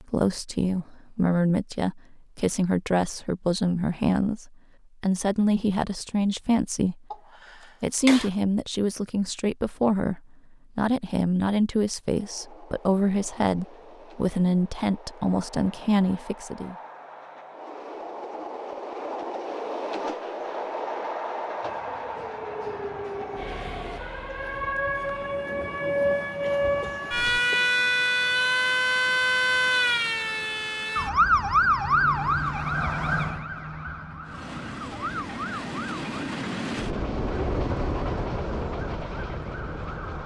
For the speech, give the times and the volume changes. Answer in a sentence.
The speech can be heard from 0.0 to 7.0 s, at a steady volume; and from 7.8 to 16.8 s, at a steady volume.